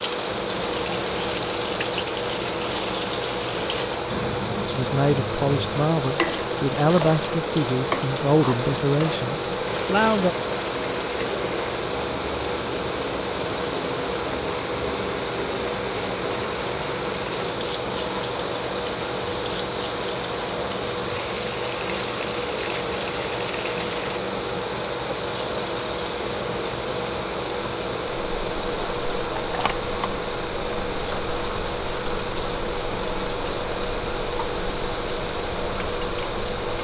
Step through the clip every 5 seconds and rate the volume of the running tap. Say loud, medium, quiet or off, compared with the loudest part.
loud, loud, loud, loud, loud, loud, medium, medium.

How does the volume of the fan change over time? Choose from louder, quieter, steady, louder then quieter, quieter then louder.
steady.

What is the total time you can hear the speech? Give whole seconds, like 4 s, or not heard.
6 s.